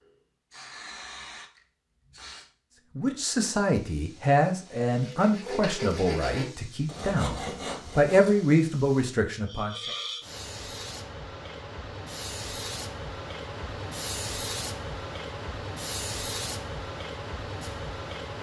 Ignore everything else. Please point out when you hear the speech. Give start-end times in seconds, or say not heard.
3.0-9.9.